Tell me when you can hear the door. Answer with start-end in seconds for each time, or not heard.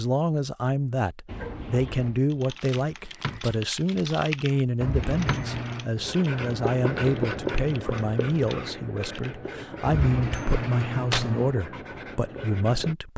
1.2-2.2, 4.8-6.0, 9.8-11.6.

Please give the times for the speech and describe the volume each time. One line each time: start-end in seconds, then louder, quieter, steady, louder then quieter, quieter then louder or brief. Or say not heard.
0.0-13.1 steady.